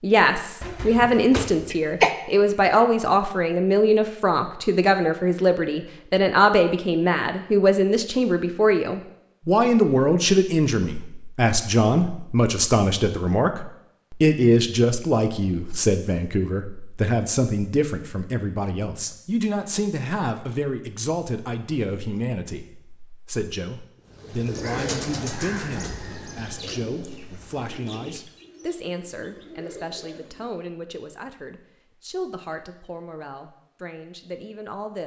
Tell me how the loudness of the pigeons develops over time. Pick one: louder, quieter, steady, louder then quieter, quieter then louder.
quieter.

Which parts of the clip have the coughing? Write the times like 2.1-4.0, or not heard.
0.6-2.1.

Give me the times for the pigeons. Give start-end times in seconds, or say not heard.
24.1-30.6.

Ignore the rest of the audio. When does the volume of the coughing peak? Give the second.
2 s.